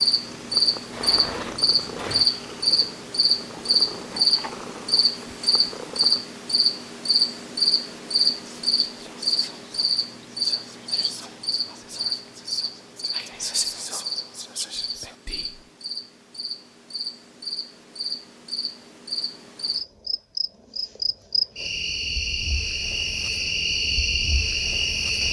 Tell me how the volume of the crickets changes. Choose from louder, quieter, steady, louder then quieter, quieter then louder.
quieter then louder.